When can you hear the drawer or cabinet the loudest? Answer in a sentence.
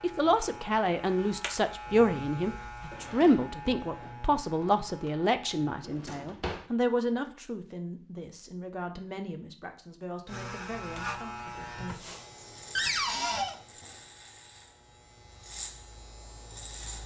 The loudest moment of the drawer or cabinet is at 13 seconds.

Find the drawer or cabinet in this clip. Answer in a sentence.
You can hear the drawer or cabinet from 2.9 to 4.2 s, from 5.8 to 6.7 s and from 12.8 to 13.6 s.